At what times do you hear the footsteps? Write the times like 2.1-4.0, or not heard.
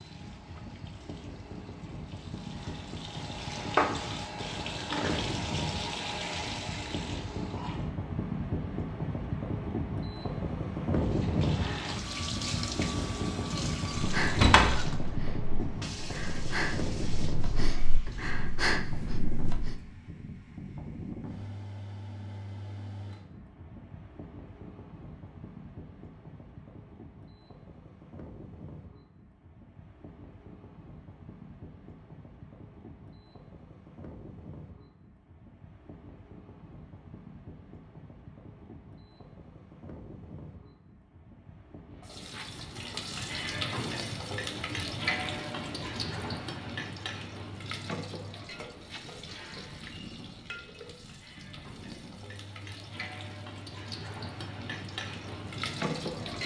not heard.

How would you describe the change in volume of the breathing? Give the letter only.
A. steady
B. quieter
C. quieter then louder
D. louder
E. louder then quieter
D.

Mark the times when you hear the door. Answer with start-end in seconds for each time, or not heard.
14.3-14.8.